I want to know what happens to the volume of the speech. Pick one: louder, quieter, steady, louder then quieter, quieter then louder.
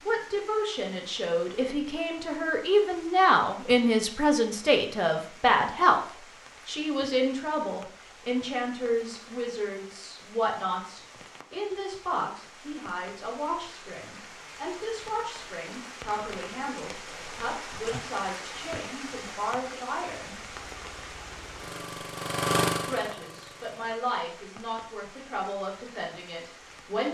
quieter.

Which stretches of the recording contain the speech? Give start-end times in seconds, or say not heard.
0.1-20.4, 22.9-27.1.